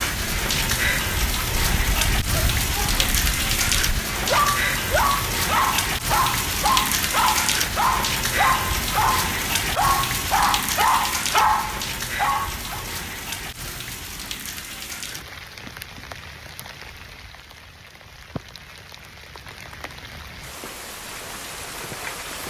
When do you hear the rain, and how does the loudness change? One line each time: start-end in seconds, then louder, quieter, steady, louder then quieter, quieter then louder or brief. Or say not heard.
0.0-22.4 quieter.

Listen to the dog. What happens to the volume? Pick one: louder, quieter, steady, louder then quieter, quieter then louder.
louder.